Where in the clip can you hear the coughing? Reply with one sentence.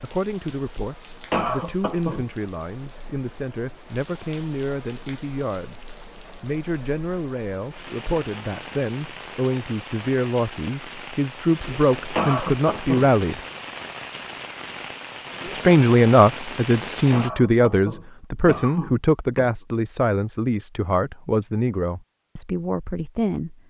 The coughing can be heard from 1.3 to 2.2 s, from 12.2 to 13.1 s and from 17.1 to 19.5 s.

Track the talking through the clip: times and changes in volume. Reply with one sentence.
You can hear the talking from 0.0 to 13.4 s, getting louder; and from 15.5 to 23.6 s, getting quieter.